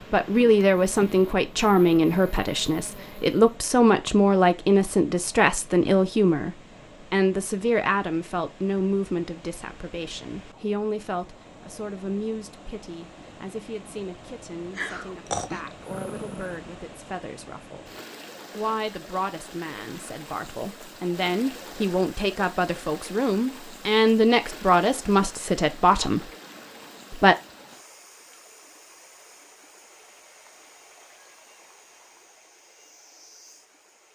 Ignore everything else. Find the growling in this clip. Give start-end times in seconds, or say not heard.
14.8-16.6.